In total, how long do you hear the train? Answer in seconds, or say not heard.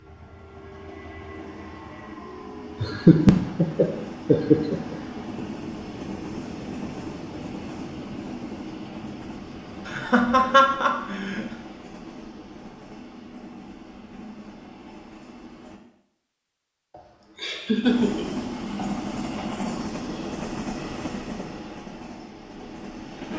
21 s.